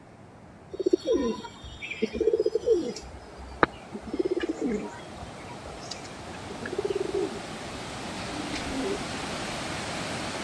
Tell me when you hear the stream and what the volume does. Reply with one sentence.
The stream can be heard from 0.0 to 10.3 s, getting louder.